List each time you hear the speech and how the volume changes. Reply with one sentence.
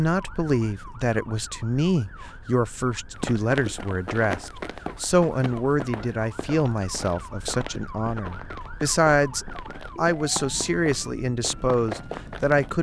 The speech can be heard from 0.0 to 12.7 s, at a steady volume.